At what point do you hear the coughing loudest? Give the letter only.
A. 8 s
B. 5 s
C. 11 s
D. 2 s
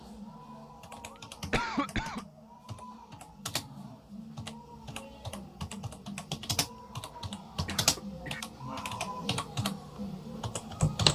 D.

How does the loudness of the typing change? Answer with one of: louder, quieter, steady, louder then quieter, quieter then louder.
louder.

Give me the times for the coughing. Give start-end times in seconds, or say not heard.
1.1-2.2, 7.1-8.4.